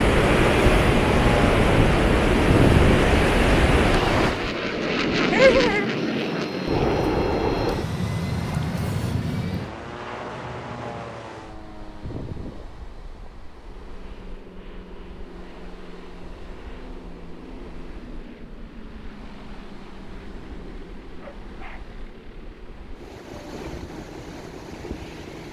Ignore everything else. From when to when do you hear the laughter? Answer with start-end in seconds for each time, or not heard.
5.3-5.9.